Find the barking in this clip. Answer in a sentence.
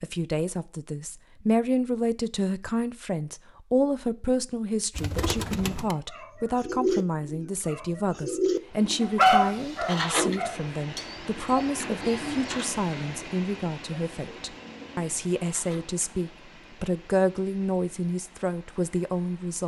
You can hear the barking from 9.0 to 11.0 s.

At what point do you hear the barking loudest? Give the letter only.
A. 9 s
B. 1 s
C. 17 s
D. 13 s
A.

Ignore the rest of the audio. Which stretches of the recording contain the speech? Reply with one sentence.
The speech can be heard from 0.0 to 19.6 s.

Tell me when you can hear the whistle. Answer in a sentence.
The whistle can't be heard in this clip.